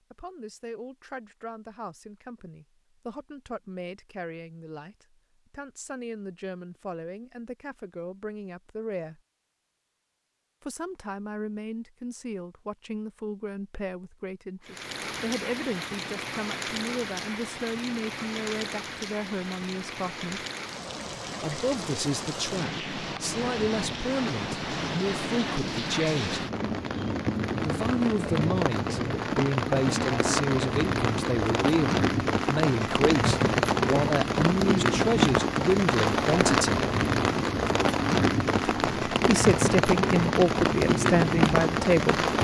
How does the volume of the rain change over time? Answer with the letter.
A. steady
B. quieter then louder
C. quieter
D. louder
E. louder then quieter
D.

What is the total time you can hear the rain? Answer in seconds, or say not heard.
28 s.